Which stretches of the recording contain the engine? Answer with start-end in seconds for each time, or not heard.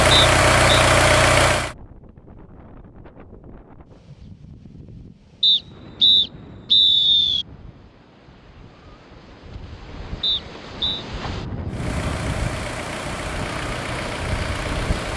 0.0-1.8, 11.7-15.1.